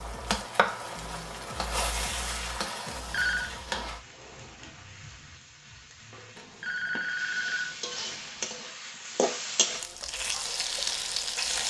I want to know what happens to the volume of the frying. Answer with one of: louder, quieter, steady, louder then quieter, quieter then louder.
quieter then louder.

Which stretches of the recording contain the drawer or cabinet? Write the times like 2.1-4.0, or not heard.
4.0-5.4.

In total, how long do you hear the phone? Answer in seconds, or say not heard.
3 s.